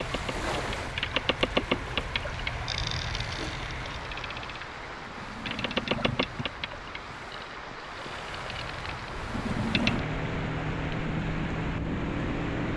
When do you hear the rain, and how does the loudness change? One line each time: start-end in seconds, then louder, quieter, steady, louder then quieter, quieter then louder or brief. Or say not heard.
0.0-12.7 steady.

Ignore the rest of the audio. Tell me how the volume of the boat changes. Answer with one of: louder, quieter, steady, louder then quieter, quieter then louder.
quieter then louder.